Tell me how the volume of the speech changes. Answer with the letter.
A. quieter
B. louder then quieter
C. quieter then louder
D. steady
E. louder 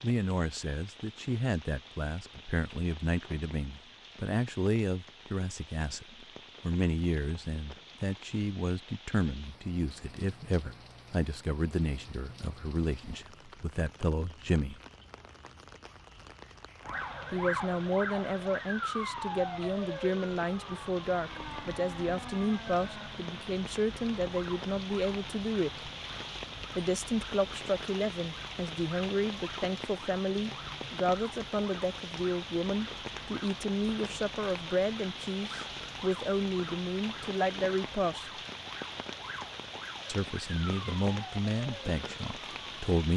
D.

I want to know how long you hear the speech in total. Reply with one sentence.
You can hear the speech for 38 seconds altogether.